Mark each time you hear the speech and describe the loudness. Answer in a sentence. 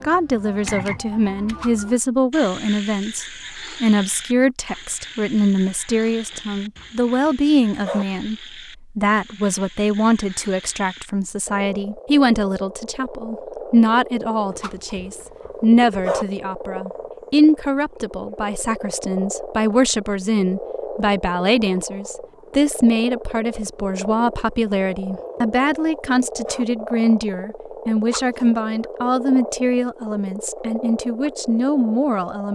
You can hear the speech from 0.0 to 32.5 s, at a steady volume.